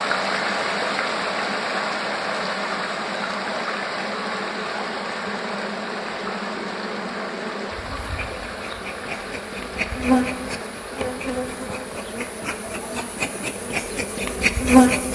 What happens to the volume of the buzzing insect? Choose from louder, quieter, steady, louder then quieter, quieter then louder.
louder.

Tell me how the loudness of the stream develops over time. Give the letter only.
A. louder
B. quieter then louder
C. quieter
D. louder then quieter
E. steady
C.